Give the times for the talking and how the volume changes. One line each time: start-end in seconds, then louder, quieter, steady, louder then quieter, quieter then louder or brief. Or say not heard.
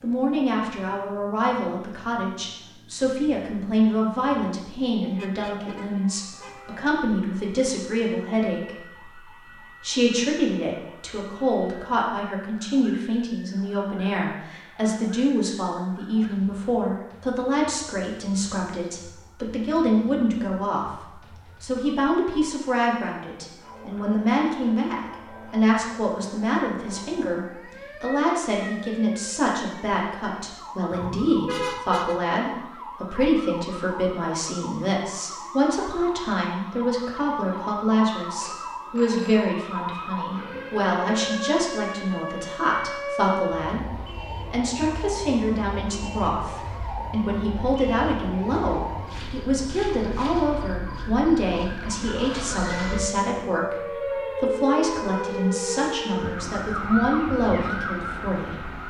0.0-58.8 steady.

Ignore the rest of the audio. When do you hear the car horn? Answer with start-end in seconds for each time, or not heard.
5.0-7.0, 30.9-32.2.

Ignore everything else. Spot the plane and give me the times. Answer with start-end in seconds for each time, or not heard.
not heard.